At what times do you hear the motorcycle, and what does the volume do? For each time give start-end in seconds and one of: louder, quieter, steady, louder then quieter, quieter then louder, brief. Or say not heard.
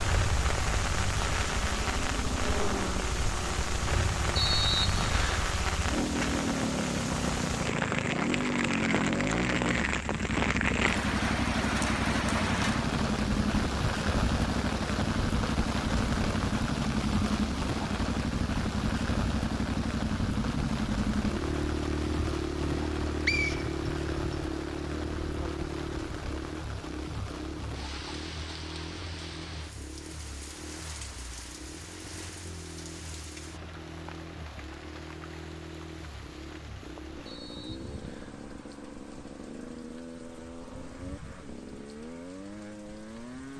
0.0-43.5 quieter.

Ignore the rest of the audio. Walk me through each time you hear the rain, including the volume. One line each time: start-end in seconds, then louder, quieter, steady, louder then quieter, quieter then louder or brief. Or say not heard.
0.0-43.5 quieter.